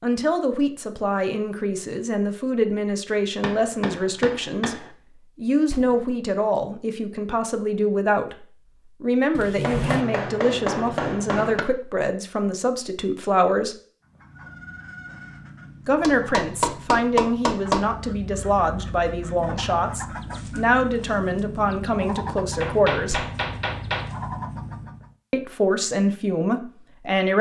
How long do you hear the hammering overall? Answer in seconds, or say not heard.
7 s.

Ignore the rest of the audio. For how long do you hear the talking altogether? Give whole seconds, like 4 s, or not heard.
23 s.